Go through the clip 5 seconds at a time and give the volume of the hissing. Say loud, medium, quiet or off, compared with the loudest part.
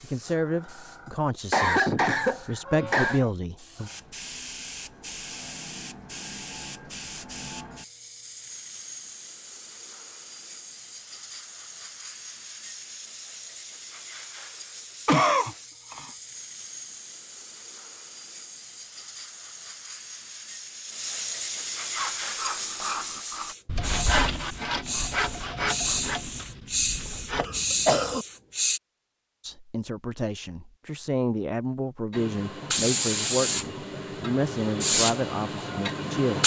quiet, quiet, quiet, quiet, medium, loud, loud, loud.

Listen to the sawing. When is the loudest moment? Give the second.
24 s.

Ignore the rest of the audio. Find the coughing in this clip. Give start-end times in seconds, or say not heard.
1.1-3.2, 15.1-16.1, 27.4-28.2.